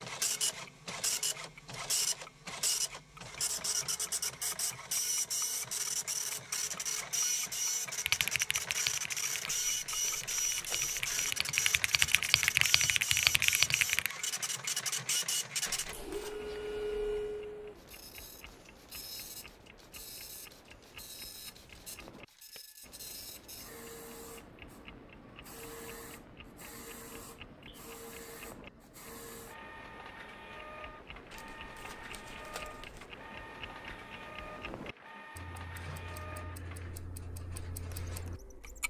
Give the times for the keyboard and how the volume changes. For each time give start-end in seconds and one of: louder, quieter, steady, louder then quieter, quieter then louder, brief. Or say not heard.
8.1-14.2 quieter then louder.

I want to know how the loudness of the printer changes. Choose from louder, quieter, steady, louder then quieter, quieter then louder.
quieter.